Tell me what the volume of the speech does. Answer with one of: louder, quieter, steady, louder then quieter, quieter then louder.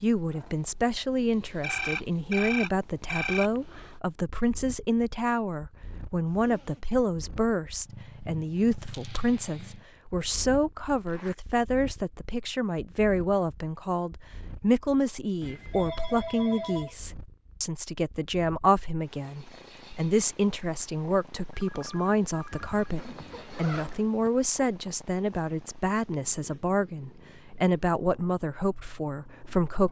steady.